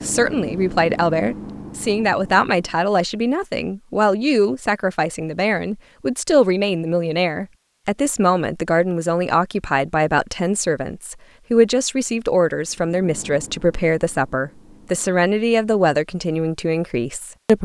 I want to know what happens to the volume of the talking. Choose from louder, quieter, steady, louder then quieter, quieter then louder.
steady.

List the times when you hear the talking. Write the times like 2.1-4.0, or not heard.
0.0-17.6.